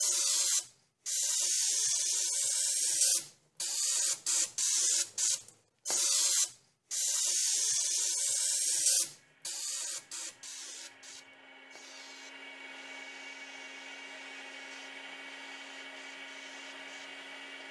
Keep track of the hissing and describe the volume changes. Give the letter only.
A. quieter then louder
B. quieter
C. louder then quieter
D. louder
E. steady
B.